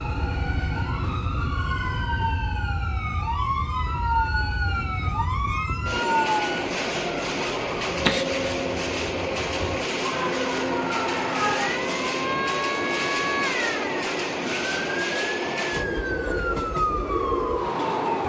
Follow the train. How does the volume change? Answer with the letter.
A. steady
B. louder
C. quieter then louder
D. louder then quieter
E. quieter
B.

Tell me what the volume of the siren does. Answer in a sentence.
The loudness of the siren stays about the same.